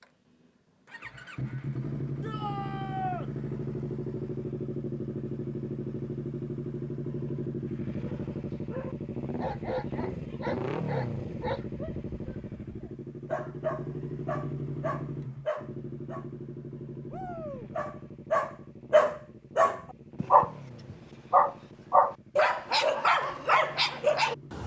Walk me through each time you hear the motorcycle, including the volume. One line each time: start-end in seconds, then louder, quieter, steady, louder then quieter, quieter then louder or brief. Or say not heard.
0.0-24.6 quieter.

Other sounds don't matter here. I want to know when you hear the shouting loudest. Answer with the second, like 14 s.
3 s.